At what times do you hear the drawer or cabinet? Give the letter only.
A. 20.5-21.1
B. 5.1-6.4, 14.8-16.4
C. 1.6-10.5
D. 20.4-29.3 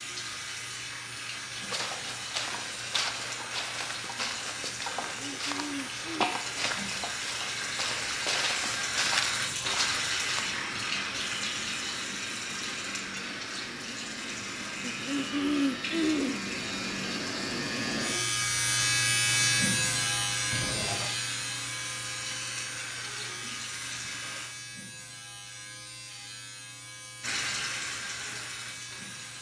A.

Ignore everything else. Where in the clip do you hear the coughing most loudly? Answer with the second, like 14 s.
16 s.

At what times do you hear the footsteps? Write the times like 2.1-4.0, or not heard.
1.6-10.5.